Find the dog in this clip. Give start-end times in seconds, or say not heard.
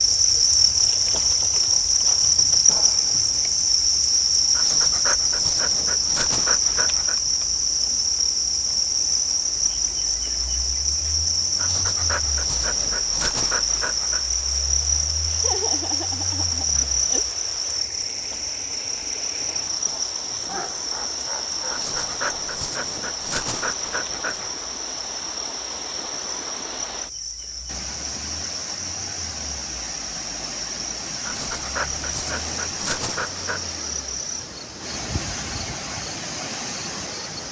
4.5-7.2, 11.6-14.2, 21.7-24.5, 31.2-33.6.